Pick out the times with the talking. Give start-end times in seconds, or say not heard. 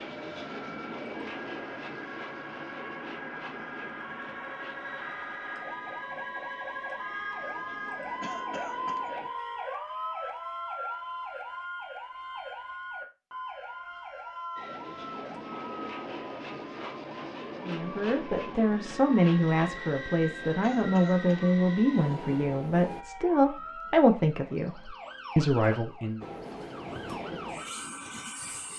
17.6-26.2.